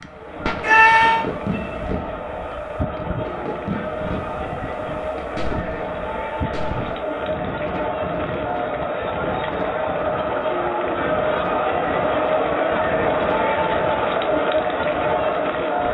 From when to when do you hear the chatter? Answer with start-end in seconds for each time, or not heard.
0.0-15.8.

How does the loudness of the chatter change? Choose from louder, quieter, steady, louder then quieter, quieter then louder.
louder.